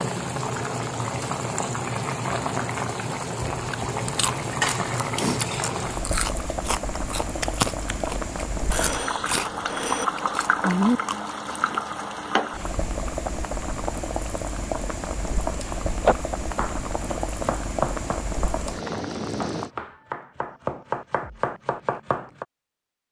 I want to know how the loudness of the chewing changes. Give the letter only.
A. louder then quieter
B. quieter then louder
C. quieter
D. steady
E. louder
E.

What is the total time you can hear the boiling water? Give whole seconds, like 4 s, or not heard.
20 s.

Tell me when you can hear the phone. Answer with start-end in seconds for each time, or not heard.
8.7-10.1.